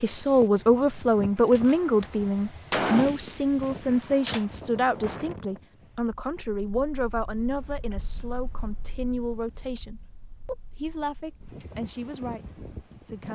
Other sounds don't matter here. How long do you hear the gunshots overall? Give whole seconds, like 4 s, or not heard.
3 s.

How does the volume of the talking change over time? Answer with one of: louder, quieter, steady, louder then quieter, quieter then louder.
quieter.